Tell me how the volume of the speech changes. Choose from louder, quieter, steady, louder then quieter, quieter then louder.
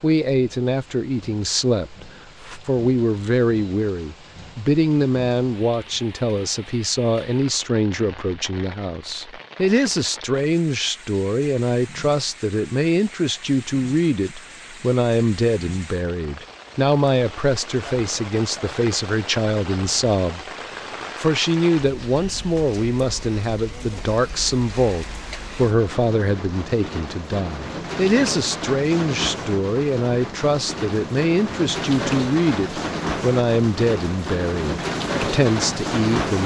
steady.